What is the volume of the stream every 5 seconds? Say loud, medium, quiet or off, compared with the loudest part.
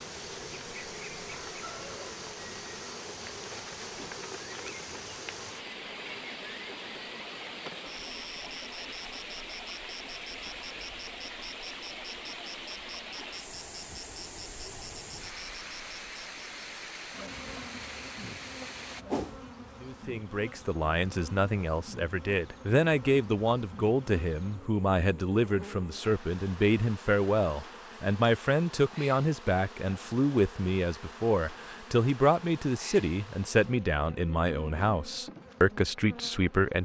loud, loud, loud, loud, off, off, off, off.